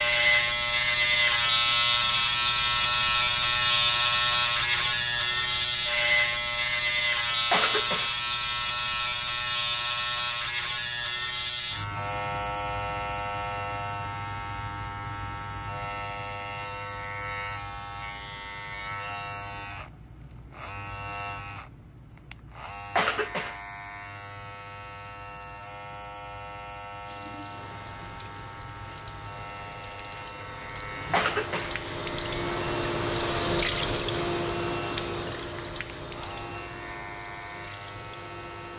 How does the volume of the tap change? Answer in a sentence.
The loudness of the tap goes up, then down.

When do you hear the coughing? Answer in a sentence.
The coughing can be heard from 7.5 to 8.2 s, from 22.9 to 23.6 s and from 31.1 to 31.8 s.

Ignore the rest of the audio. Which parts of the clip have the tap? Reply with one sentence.
You can hear the tap from 27.1 to 38.7 s.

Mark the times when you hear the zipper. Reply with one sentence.
The zipper can't be heard in this clip.